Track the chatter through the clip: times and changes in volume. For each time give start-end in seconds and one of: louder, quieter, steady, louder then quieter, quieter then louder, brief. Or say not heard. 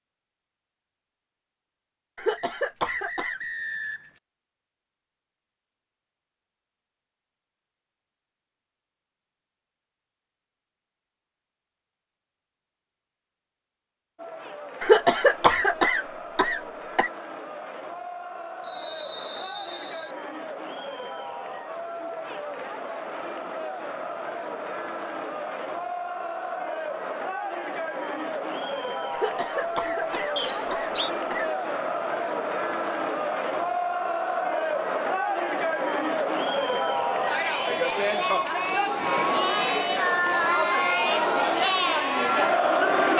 14.2-43.1 louder.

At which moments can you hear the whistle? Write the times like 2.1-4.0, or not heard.
2.4-4.2, 18.6-20.1, 30.4-31.1.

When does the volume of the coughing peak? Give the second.
15 s.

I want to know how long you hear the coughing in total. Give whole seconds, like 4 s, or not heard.
6 s.